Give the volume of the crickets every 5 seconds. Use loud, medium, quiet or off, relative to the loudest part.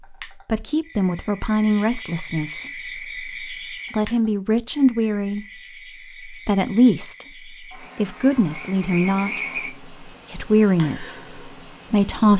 loud, medium, loud.